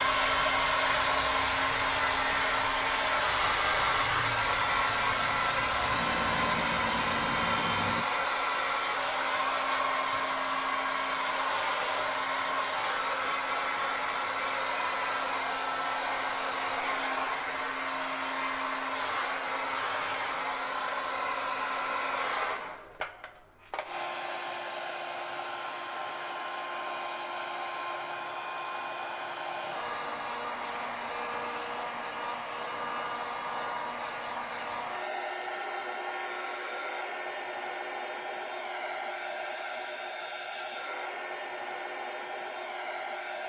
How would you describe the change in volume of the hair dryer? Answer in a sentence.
The loudness of the hair dryer goes down.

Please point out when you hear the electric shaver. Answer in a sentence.
You can hear the electric shaver from 0.0 to 8.1 s.